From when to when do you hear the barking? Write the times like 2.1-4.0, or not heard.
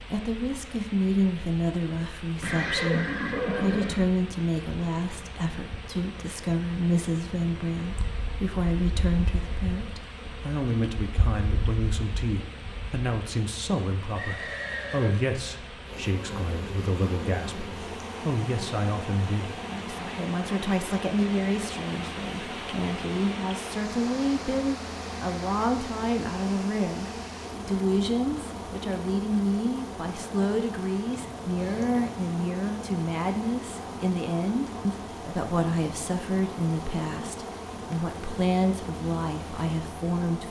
not heard.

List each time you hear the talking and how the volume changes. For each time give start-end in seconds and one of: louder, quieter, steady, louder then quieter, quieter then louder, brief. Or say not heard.
0.0-40.4 steady.